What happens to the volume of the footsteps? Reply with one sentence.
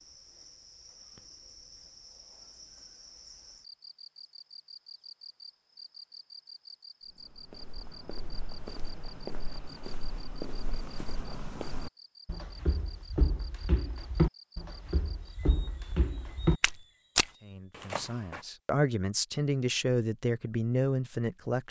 The volume of the footsteps goes up.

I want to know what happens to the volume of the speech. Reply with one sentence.
The volume of the speech goes up.